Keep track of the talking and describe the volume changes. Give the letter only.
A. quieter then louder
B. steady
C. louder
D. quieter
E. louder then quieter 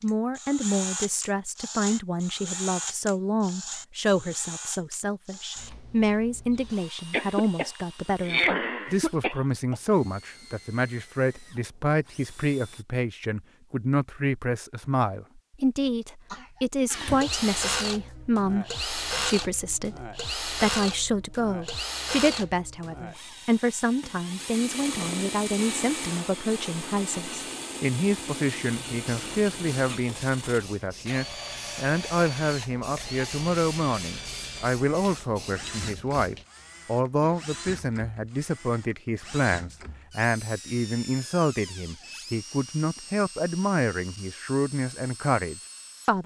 B.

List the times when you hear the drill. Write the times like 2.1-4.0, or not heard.
0.0-12.8, 16.9-46.1.